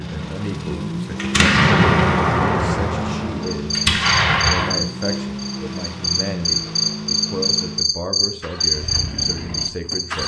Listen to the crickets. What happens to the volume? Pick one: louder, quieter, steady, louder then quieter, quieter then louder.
quieter then louder.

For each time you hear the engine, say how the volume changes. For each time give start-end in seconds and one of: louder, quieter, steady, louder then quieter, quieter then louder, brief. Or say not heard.
0.0-10.2 quieter.